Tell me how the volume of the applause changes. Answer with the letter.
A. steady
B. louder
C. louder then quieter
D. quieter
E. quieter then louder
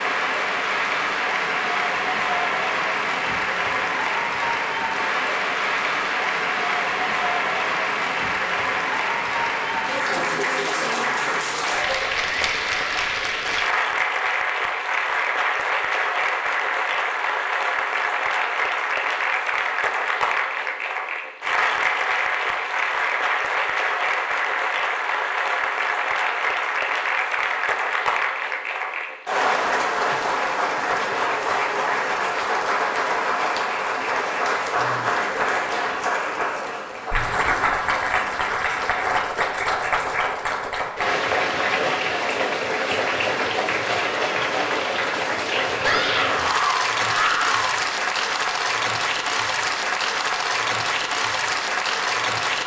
A.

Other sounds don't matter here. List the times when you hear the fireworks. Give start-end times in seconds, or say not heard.
not heard.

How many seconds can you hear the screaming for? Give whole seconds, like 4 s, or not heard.
2 s.